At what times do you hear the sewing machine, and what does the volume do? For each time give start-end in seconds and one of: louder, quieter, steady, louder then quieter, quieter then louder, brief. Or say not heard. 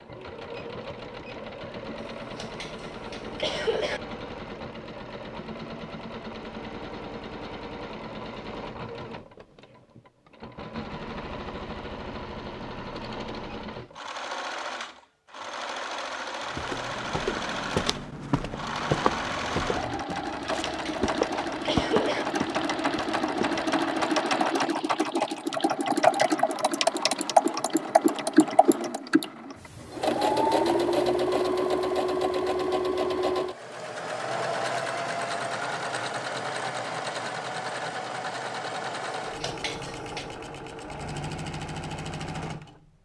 0.0-42.9 louder then quieter.